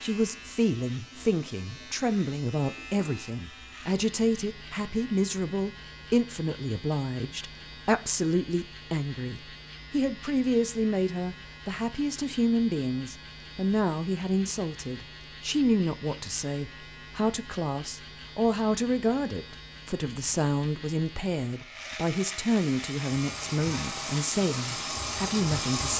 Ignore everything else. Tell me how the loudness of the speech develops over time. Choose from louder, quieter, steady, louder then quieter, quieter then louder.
steady.